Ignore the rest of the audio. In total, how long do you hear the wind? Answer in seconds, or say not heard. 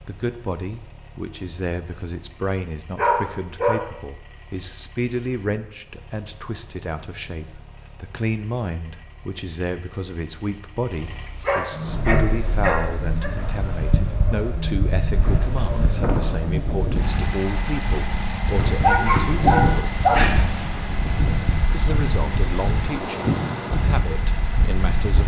13 s.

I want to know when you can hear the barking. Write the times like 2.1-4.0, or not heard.
3.0-3.8, 11.4-13.3, 18.8-20.3.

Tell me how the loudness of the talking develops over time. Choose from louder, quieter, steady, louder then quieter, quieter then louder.
steady.